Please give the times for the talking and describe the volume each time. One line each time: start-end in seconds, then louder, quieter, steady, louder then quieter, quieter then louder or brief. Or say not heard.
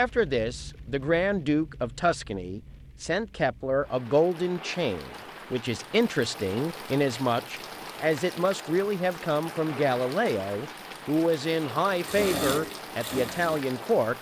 0.0-14.1 steady.